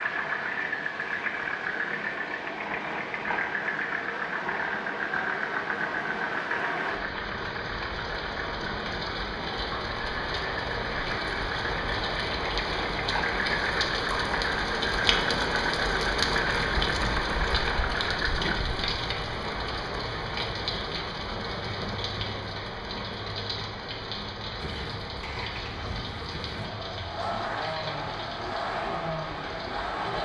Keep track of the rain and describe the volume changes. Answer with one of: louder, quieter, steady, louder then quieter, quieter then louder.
louder then quieter.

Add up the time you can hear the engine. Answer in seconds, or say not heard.
24 s.